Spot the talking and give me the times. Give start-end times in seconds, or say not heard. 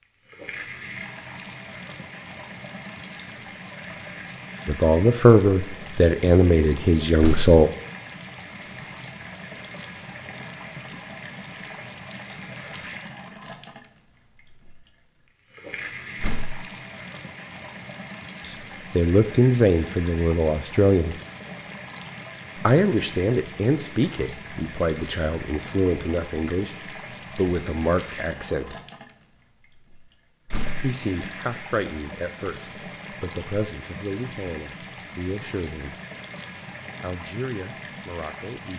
4.7-7.7, 18.5-21.1, 22.6-26.8, 27.4-28.8, 30.8-36.0, 37.0-38.7.